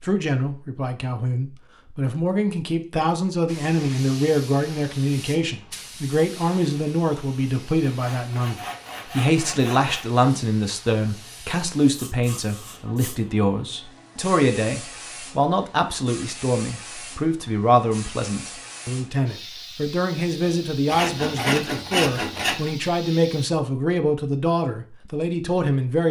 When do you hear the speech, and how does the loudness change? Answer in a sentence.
You can hear the speech from 0.0 to 26.0 s, at a steady volume.